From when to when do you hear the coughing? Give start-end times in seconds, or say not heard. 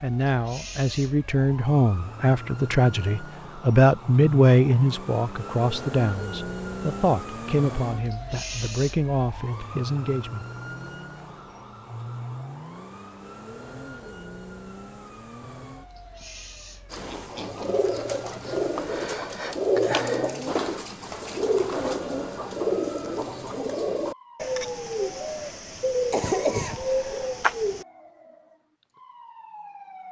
26.1-27.2.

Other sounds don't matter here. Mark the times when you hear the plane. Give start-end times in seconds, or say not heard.
not heard.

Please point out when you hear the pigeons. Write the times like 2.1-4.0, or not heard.
16.9-27.9.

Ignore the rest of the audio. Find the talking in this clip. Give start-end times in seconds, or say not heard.
0.0-10.4.